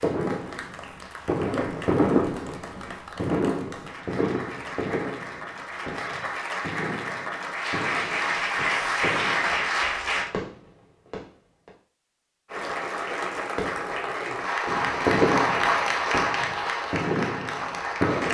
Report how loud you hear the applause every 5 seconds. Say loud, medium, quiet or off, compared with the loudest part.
quiet, loud, loud, loud.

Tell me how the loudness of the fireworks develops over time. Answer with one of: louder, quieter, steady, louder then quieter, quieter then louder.
quieter then louder.